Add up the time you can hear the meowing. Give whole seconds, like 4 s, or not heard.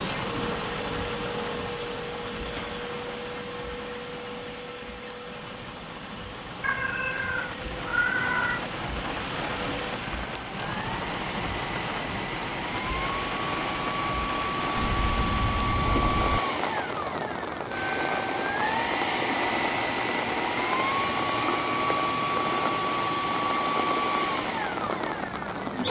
4 s.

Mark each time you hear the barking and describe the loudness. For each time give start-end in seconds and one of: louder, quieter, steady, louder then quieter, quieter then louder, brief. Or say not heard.
not heard.